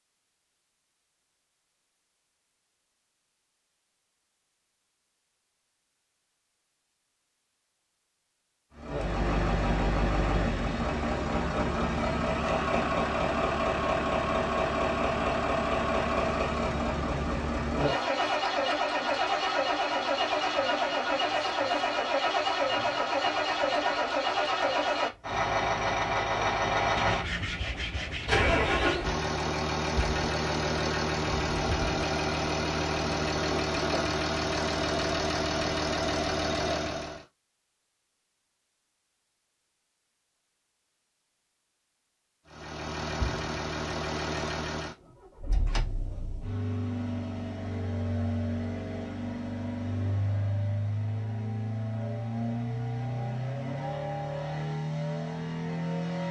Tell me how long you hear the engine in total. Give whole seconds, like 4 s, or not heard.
42 s.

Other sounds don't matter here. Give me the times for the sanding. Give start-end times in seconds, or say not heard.
26.9-29.0.